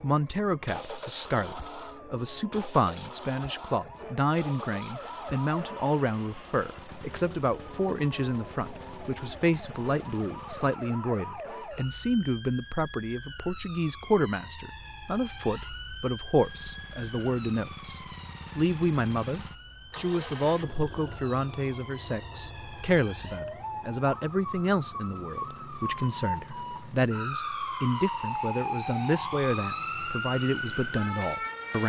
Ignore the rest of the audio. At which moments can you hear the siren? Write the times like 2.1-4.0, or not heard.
0.0-31.8.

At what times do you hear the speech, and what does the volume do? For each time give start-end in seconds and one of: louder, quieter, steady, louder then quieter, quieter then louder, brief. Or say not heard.
0.0-31.8 steady.